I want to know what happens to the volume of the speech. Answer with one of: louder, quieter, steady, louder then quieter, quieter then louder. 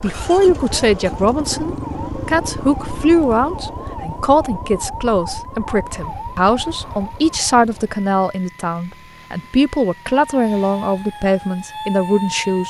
steady.